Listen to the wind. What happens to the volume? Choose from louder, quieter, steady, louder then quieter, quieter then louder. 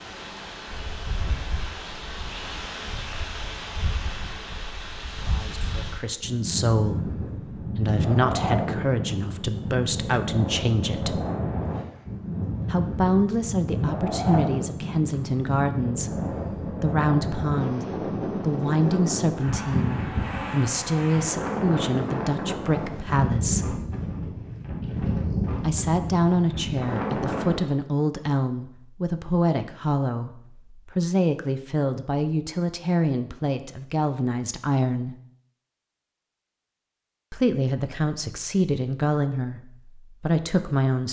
louder.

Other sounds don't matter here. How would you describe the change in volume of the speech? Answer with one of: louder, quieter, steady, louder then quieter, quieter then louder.
steady.